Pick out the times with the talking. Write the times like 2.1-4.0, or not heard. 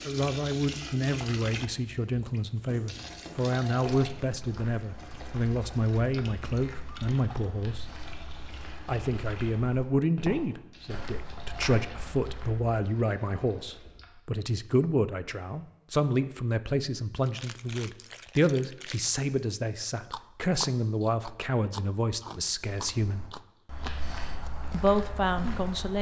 0.0-8.0, 8.8-23.2, 24.7-25.9.